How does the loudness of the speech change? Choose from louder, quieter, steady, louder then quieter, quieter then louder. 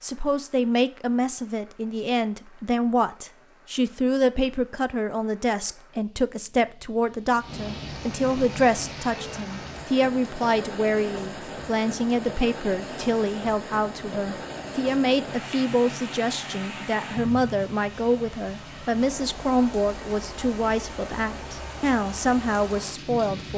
steady.